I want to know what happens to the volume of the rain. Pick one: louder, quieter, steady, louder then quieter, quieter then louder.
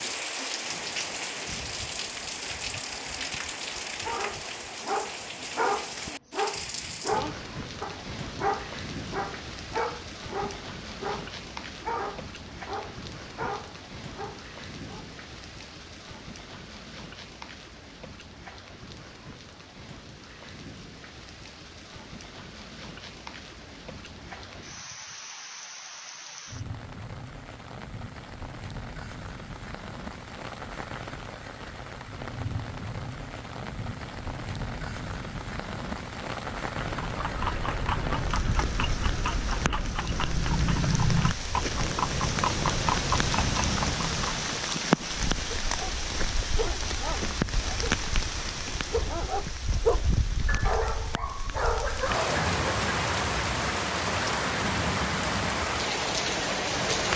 quieter then louder.